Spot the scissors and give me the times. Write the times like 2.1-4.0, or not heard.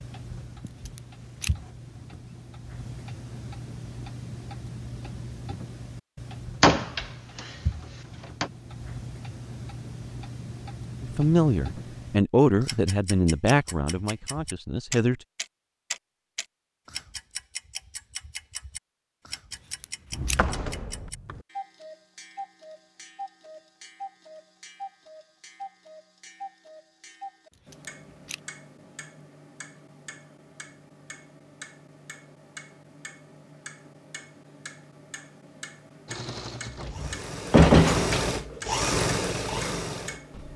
0.7-1.5, 19.5-20.4, 27.5-28.4.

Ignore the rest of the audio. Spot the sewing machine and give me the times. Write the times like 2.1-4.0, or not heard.
36.0-40.5.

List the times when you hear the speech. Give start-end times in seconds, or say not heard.
11.0-15.2.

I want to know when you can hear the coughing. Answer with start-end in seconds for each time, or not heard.
not heard.